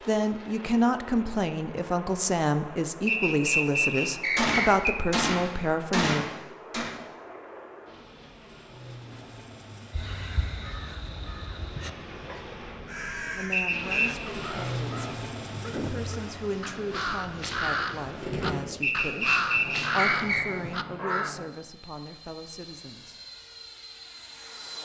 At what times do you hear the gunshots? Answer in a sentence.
You can hear the gunshots from 4.3 to 6.9 s and from 18.2 to 18.8 s.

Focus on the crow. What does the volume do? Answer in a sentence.
The volume of the crow goes up.